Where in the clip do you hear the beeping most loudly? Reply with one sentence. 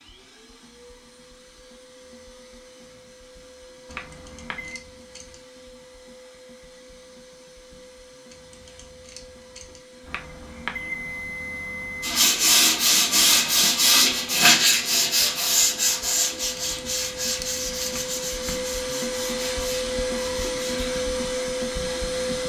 The volume of the beeping peaks at 11 seconds.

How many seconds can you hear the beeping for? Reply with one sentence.
You can hear the beeping for 4 seconds altogether.